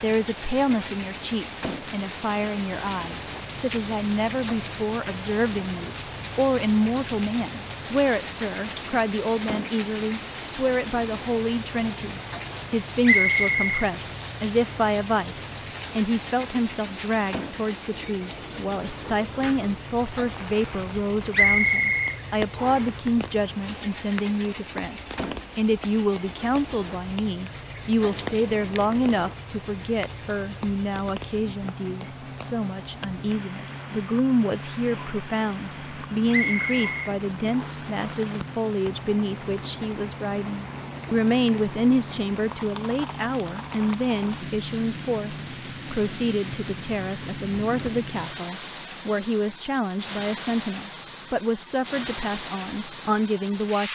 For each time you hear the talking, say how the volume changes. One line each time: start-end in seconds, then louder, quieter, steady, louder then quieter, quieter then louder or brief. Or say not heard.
0.0-53.9 steady.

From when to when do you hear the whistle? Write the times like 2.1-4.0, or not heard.
13.0-13.9, 21.3-22.9, 36.3-37.9.